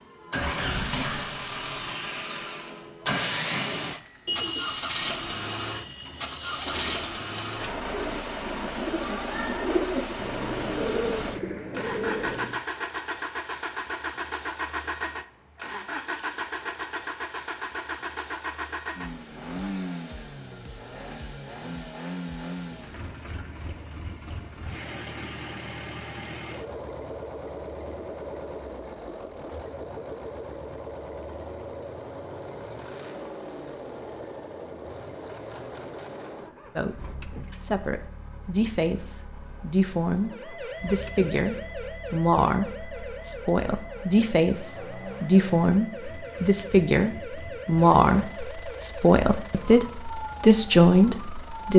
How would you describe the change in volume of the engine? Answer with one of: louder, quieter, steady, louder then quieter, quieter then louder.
quieter.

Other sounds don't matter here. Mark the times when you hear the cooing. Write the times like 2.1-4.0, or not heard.
3.6-12.6.